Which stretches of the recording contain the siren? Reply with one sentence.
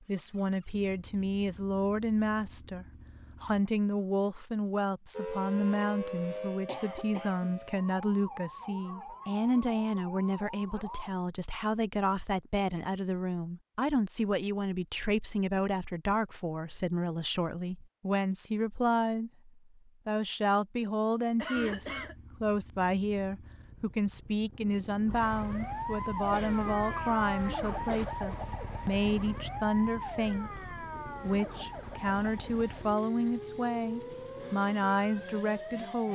You can hear the siren from 5.1 to 11.1 s and from 25.1 to 36.1 s.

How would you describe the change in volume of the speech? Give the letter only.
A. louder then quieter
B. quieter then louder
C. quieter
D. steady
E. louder
D.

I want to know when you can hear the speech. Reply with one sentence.
You can hear the speech from 0.1 to 36.1 s.